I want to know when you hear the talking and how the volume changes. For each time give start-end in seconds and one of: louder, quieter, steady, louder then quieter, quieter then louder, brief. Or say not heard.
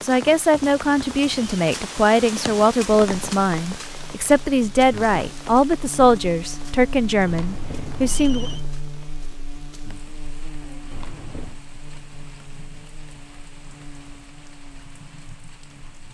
0.0-8.5 steady.